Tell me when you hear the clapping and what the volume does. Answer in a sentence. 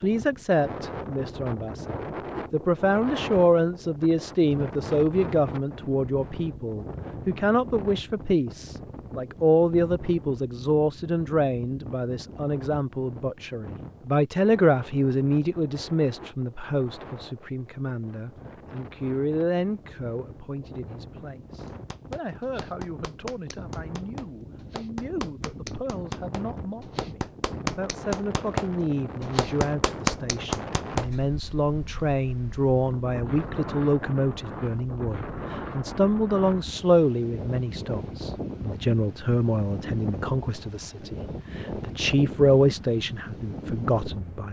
The clapping can be heard from 21.6 to 31.1 s, getting louder.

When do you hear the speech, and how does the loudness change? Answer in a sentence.
You can hear the speech from 0.0 to 44.4 s, getting quieter then louder.